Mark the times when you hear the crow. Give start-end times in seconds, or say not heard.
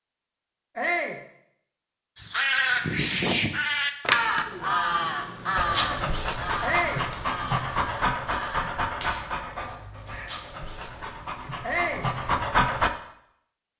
2.1-10.2.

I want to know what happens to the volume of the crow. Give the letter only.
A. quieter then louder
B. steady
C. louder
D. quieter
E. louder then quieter
D.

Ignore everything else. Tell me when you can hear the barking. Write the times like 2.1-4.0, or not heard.
5.5-12.9.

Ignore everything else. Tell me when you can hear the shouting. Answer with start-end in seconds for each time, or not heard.
0.8-1.2, 6.6-7.0, 11.6-12.1.